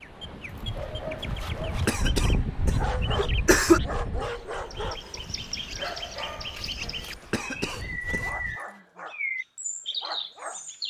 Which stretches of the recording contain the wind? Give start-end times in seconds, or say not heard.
0.0-8.6.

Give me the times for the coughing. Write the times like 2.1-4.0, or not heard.
1.9-3.8, 7.3-8.3.